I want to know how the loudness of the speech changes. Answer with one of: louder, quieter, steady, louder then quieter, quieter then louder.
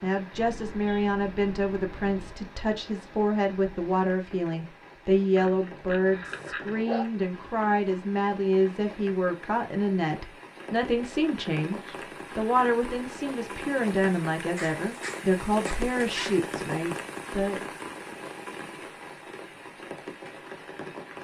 steady.